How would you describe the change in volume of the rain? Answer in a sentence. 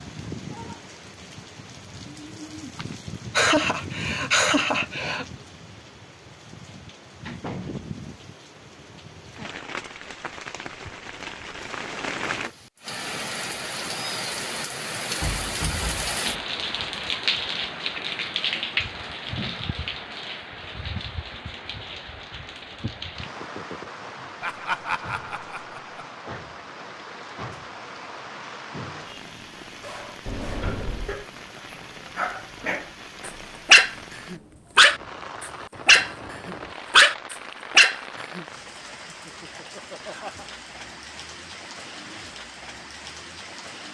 The volume of the rain goes up, then down.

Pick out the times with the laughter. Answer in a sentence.
You can hear the laughter from 2.8 to 5.2 s, from 24.4 to 26.0 s and from 39.0 to 40.5 s.